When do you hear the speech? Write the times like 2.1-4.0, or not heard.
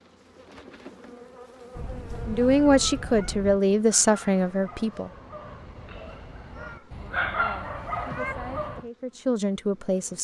2.2-5.1, 6.8-10.1.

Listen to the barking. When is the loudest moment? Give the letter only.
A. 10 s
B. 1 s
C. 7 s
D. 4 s
C.